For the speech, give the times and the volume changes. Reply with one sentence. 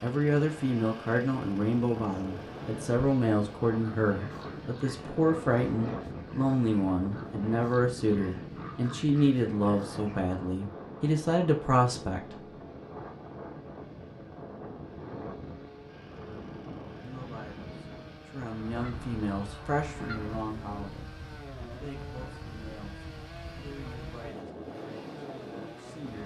You can hear the speech from 0.0 to 12.6 s, at a steady volume; and from 16.1 to 26.2 s, getting louder then quieter.